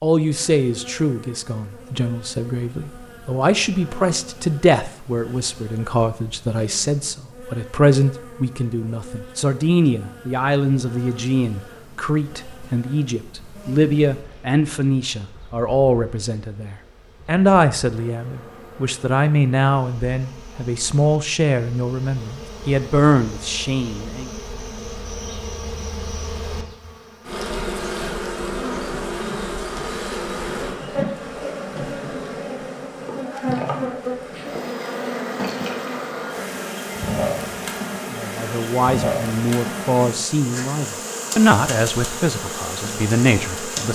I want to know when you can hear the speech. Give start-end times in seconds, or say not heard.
0.0-24.3, 38.1-43.9.